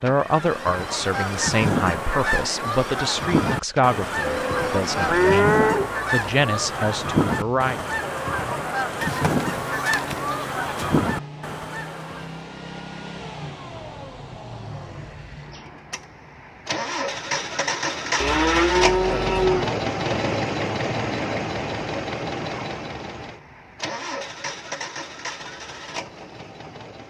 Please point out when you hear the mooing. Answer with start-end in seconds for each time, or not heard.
4.2-5.9, 9.0-10.9, 18.2-19.7.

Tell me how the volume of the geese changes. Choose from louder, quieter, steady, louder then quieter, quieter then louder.
steady.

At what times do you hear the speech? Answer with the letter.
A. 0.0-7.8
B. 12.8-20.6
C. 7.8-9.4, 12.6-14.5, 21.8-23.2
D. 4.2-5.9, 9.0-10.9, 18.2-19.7
A.